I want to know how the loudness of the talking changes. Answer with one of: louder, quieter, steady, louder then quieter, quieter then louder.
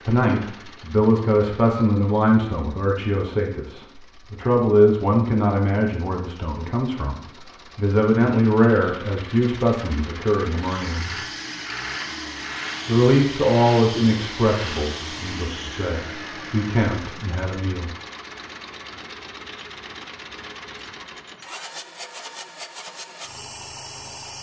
quieter.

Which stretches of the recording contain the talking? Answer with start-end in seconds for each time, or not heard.
0.1-11.2, 12.8-17.9.